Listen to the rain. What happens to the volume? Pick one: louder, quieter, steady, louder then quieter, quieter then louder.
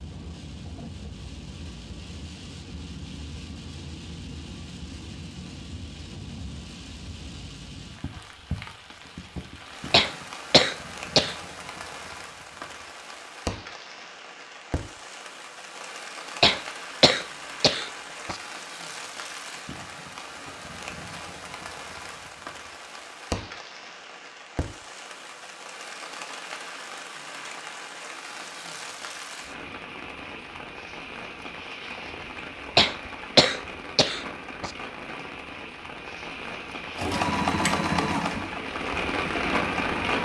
louder.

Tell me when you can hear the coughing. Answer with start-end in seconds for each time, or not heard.
9.9-11.3, 16.4-18.4, 32.8-34.7.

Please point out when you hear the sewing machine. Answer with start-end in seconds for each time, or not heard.
37.0-40.1.